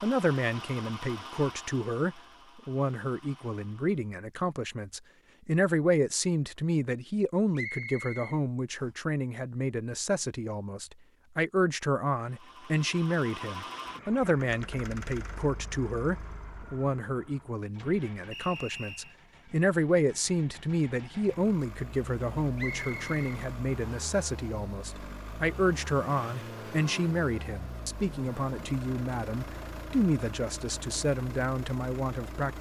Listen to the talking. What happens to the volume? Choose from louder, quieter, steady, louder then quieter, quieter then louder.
steady.